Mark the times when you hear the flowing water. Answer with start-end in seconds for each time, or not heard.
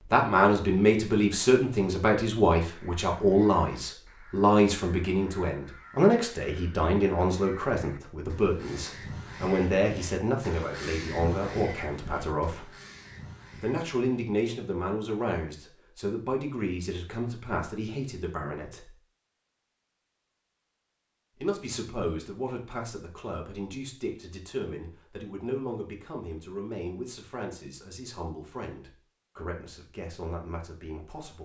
not heard.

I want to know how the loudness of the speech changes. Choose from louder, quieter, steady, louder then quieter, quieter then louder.
quieter.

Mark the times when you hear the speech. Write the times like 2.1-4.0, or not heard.
0.1-12.7, 13.6-18.9, 21.4-31.4.